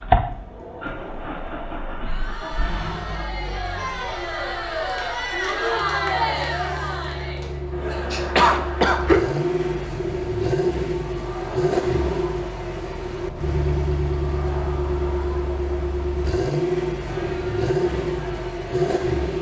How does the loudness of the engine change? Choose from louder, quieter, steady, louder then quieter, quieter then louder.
louder.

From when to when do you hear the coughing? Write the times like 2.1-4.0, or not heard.
8.1-9.2.